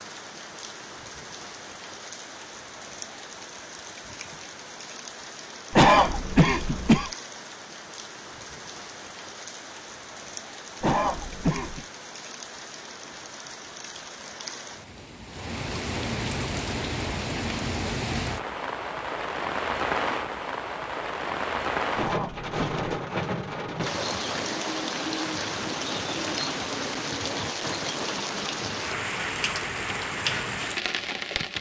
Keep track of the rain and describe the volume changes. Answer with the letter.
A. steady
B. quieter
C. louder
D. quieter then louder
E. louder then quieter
C.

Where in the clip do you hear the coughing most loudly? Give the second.
6 s.